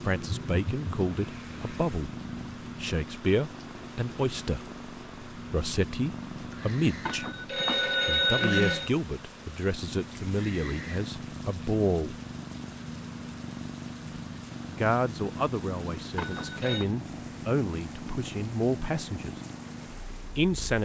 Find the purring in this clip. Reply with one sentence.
The purring can be heard from 0.0 to 20.8 s.